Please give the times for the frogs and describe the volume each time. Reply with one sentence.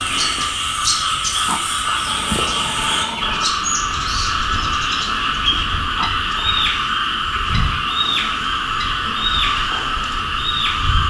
The frogs can be heard from 0.0 to 11.0 s, at a steady volume.